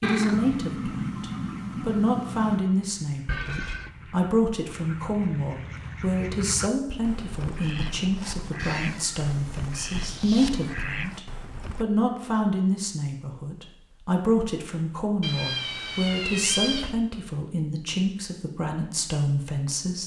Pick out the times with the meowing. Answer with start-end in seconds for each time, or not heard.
0.0-2.6, 8.6-10.8, 15.2-16.9.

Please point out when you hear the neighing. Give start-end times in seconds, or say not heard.
3.2-3.9.